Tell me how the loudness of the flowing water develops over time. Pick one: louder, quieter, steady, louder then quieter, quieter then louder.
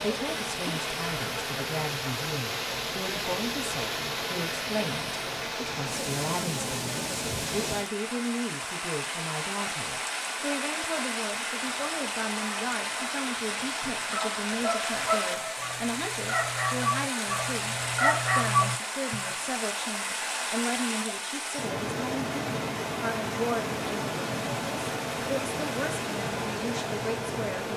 steady.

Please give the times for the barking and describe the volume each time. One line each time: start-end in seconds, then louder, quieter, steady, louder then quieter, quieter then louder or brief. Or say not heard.
11.7-19.4 louder.